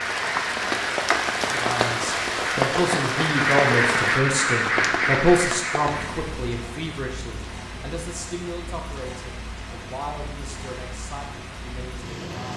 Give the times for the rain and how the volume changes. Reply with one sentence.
The rain can be heard from 0.0 to 12.5 s, getting quieter.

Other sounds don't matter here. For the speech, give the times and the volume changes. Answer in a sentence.
The speech can be heard from 1.4 to 12.5 s, getting quieter.